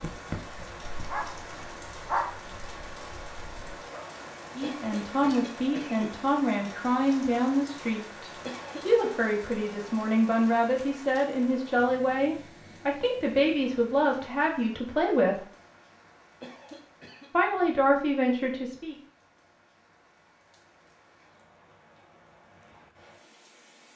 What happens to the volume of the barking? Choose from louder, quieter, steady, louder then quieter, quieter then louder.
louder then quieter.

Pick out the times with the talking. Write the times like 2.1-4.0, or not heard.
4.5-15.4, 17.3-18.9.